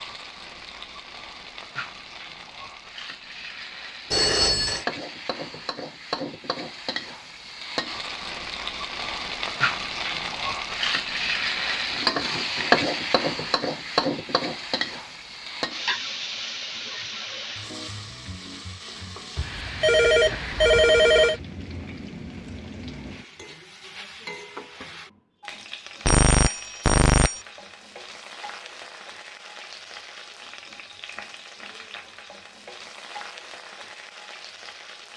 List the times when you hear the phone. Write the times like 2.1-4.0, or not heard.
4.1-4.8, 19.4-21.4, 26.1-27.4.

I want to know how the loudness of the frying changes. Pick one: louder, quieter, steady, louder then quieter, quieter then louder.
louder then quieter.